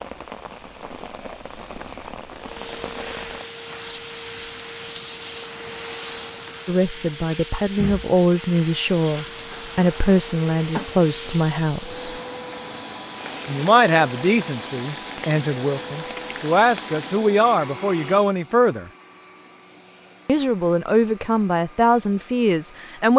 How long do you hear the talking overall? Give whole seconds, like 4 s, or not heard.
14 s.